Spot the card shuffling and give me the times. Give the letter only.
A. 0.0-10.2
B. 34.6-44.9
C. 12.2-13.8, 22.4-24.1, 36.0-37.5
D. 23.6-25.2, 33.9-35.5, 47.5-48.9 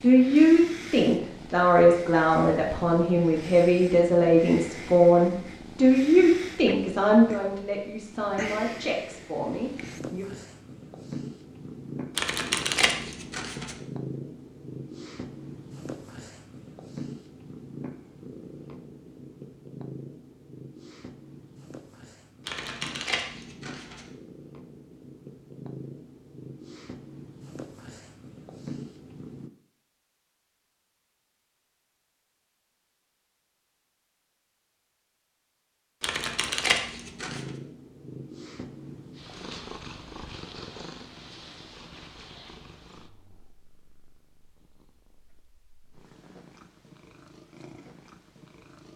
C.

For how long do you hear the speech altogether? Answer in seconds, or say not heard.
10 s.